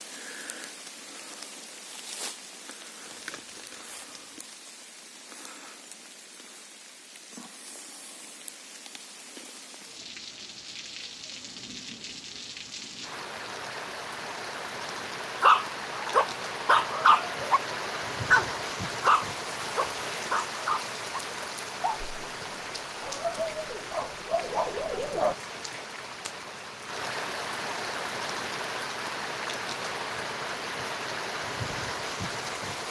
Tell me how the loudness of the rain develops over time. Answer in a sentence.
The loudness of the rain goes up.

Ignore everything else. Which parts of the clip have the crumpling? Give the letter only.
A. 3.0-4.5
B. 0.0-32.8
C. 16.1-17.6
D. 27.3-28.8
A.